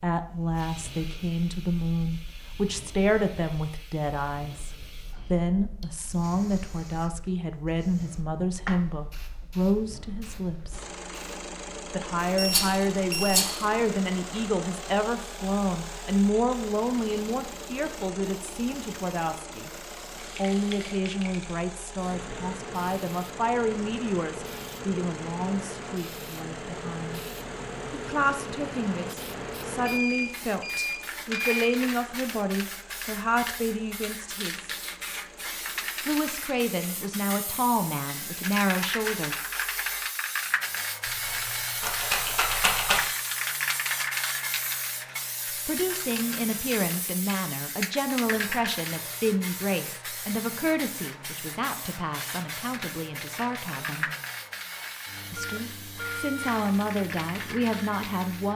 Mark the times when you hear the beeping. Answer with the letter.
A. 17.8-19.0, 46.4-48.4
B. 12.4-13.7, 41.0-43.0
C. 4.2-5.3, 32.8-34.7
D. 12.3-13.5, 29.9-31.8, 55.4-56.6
D.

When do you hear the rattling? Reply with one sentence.
You can hear the rattling from 12.4 to 13.7 s and from 41.0 to 43.0 s.